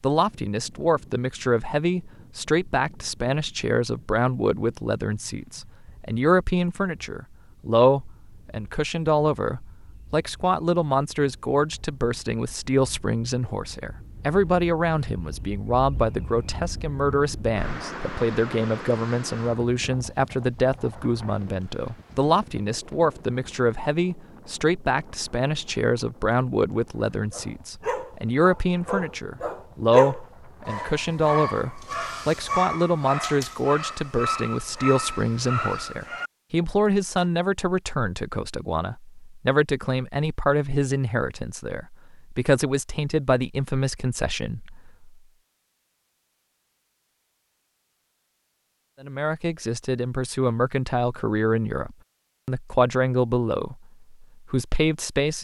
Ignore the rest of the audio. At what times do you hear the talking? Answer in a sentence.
The talking can be heard from 0.0 to 45.1 s and from 49.0 to 55.3 s.